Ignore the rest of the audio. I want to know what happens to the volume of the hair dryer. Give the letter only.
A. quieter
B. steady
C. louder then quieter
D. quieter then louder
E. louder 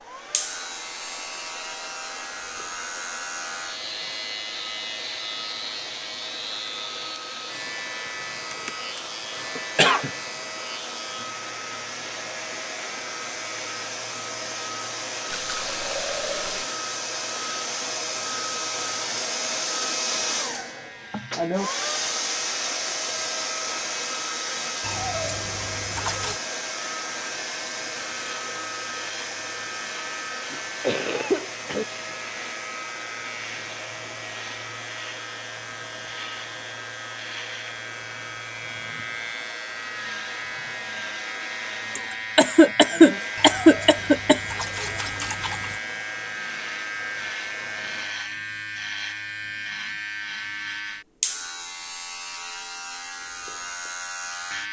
C.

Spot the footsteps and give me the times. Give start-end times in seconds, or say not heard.
not heard.